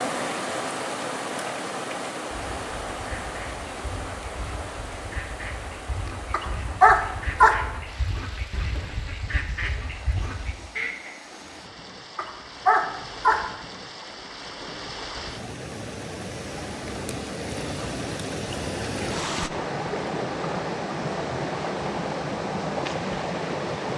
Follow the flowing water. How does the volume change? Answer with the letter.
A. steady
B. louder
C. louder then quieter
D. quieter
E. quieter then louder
E.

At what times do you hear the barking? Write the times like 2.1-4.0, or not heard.
6.3-7.6, 12.2-13.4.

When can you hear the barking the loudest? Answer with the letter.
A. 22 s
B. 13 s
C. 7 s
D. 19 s
C.